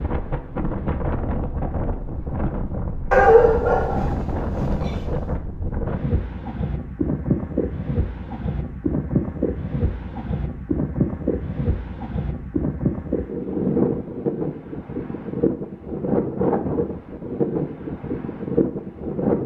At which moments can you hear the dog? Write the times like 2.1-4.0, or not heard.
3.1-5.2.